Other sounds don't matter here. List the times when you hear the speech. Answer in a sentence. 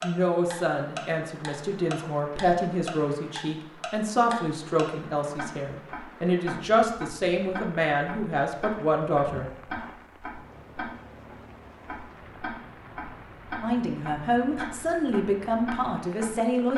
You can hear the speech from 0.0 to 9.4 s and from 13.6 to 16.7 s.